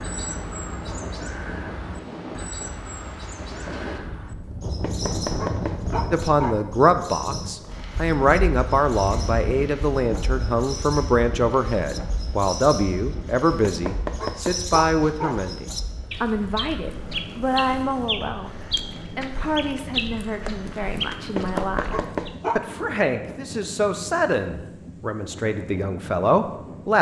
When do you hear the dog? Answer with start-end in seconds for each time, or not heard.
4.8-6.6, 13.7-15.4, 21.4-22.7.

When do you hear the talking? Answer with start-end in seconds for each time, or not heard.
6.1-26.9.